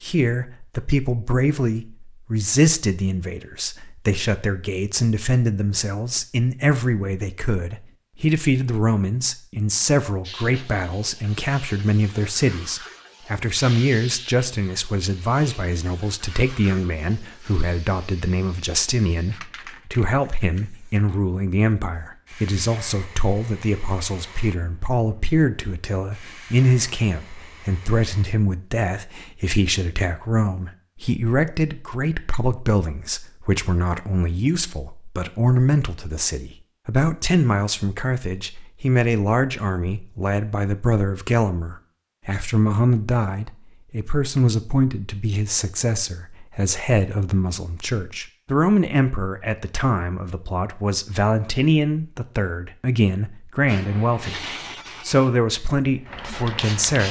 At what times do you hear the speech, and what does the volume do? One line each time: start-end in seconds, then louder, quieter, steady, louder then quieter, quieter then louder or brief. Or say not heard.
0.0-57.0 steady.